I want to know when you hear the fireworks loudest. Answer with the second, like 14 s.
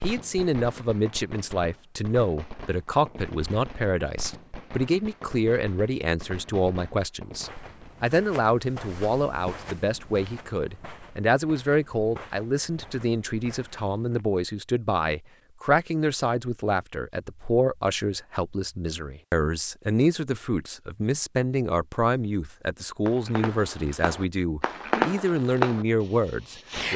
25 s.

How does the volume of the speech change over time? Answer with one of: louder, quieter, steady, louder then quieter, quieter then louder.
steady.